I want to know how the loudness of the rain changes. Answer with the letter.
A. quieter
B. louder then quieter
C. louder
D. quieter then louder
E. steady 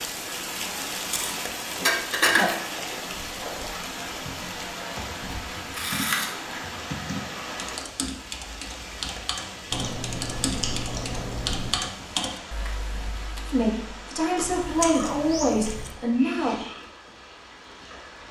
A.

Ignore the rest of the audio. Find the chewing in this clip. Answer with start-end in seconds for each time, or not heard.
1.1-2.6, 5.7-6.5, 9.7-11.7, 14.3-15.9.